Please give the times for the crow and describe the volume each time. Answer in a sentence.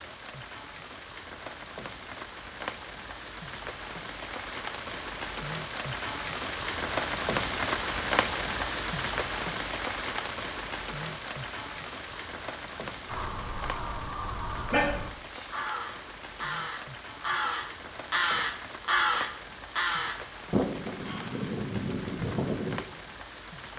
The crow can be heard from 13.1 to 22.9 s, getting louder then quieter.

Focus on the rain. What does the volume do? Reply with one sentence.
The volume of the rain goes up, then down.